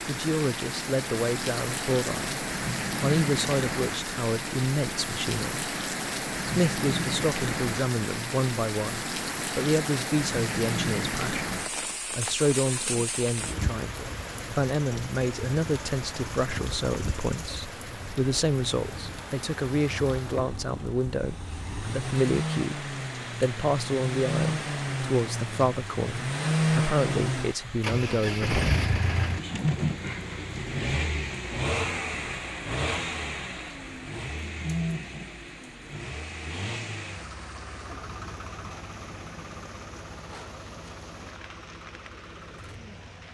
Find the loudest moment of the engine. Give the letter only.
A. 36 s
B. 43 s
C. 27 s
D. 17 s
C.